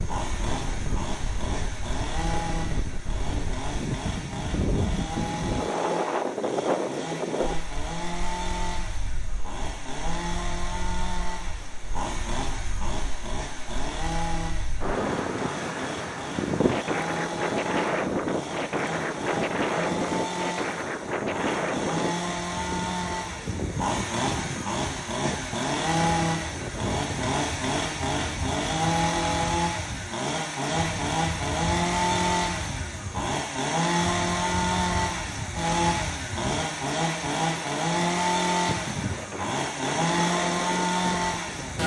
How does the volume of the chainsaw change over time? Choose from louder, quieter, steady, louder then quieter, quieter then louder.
louder.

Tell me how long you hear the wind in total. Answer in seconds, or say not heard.
42 s.